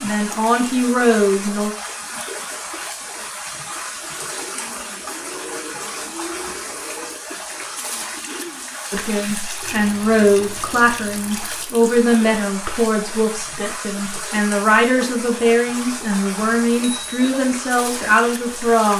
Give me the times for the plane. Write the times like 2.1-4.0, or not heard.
not heard.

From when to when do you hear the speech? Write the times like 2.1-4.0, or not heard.
0.0-1.7, 8.9-18.9.